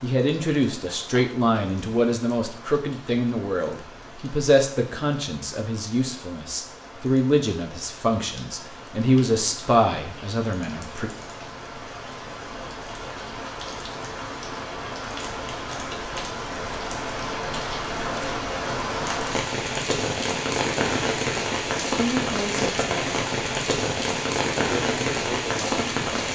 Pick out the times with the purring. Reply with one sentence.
You can't hear the purring here.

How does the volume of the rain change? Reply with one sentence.
The volume of the rain goes up.